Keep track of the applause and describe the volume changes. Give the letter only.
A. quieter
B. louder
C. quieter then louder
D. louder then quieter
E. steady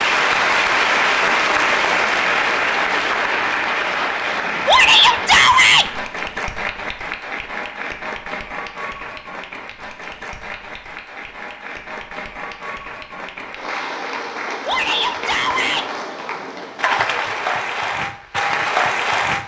C.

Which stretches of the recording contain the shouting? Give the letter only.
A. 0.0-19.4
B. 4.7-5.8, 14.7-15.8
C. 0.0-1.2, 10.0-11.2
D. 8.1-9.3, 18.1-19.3
B.